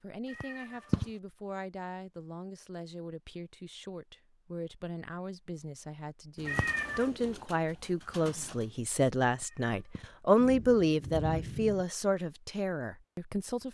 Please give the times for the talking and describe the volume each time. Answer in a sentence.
The talking can be heard from 0.0 to 13.6 s, getting louder.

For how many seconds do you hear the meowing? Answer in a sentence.
The meowing can be heard for 2 seconds in total.